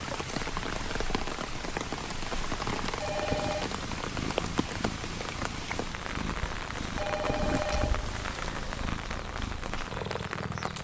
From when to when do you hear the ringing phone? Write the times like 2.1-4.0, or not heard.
3.0-3.7, 7.0-8.5.